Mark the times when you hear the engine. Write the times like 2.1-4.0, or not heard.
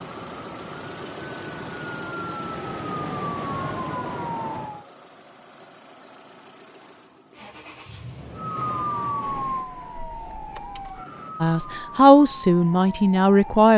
0.0-11.1.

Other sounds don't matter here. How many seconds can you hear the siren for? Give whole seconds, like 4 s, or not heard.
10 s.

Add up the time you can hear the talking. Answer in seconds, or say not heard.
2 s.